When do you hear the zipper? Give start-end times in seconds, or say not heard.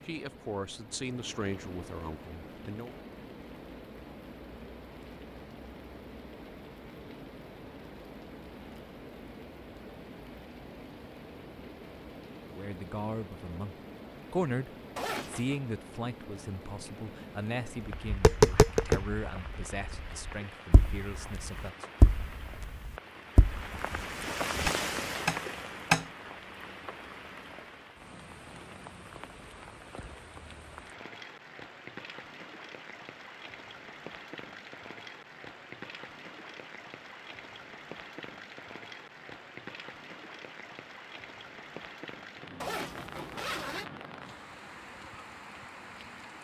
14.9-15.6, 42.6-43.9.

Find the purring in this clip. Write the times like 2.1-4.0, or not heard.
not heard.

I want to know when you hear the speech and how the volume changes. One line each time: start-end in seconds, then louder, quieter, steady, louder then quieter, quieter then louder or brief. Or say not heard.
0.0-3.0 brief
12.4-21.9 quieter.